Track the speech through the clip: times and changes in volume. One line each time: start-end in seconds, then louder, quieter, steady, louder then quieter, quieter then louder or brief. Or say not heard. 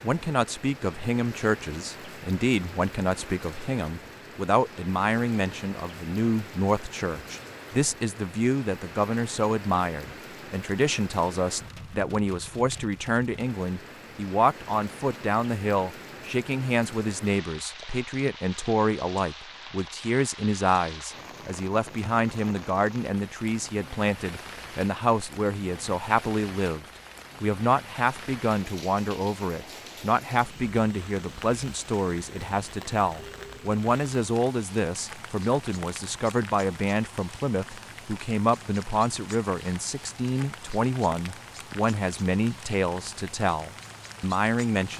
0.0-44.9 steady.